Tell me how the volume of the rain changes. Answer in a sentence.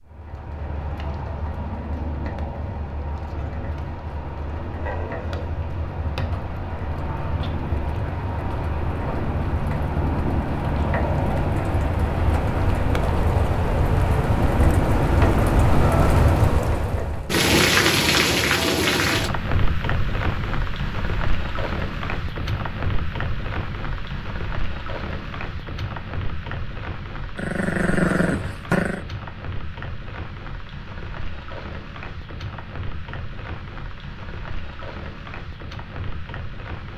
The volume of the rain goes up, then down.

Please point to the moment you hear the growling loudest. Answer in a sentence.
The loudest moment of the growling is at 28 seconds.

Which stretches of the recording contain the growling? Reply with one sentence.
You can hear the growling from 4.8 to 5.5 s and from 27.4 to 29.1 s.